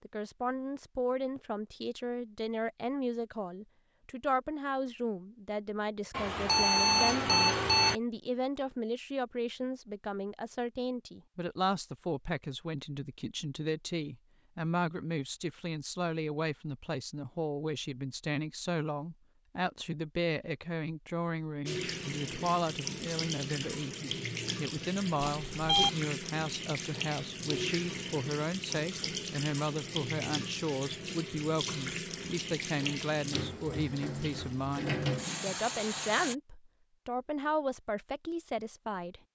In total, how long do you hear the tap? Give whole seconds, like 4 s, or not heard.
15 s.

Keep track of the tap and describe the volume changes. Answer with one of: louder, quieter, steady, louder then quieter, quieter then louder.
steady.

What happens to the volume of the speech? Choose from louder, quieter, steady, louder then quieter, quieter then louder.
steady.